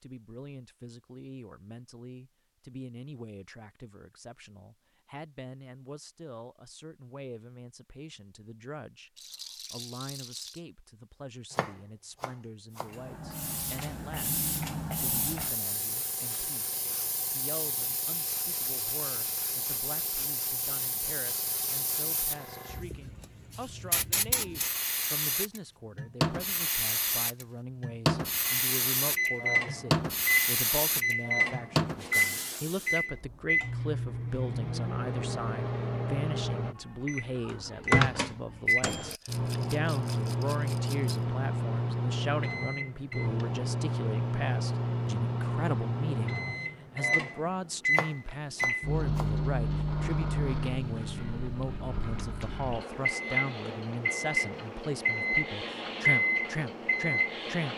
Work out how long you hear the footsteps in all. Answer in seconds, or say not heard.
not heard.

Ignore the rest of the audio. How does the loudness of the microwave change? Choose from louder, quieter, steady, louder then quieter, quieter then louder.
steady.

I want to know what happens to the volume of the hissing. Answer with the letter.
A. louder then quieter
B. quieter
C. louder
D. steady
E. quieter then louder
C.